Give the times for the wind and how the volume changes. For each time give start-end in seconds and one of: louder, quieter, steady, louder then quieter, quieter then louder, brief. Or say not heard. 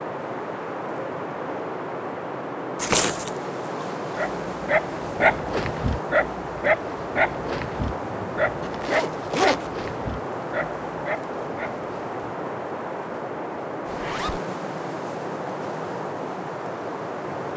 0.0-17.5 steady.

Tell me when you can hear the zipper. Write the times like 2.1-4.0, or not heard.
2.8-3.3, 8.7-9.7, 13.8-14.4.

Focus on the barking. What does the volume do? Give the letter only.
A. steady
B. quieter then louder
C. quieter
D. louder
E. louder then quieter
C.